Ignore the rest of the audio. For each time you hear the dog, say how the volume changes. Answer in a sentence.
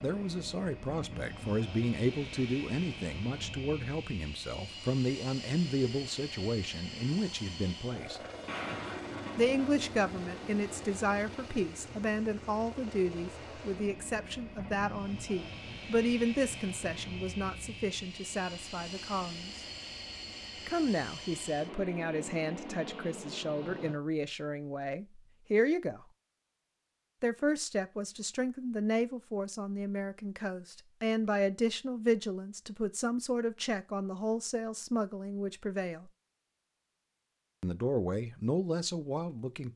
You can't hear the dog here.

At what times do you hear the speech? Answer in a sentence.
The speech can be heard from 0.0 to 8.2 s, from 9.3 to 19.5 s, from 20.6 to 26.1 s, from 27.2 to 36.1 s and from 37.6 to 39.7 s.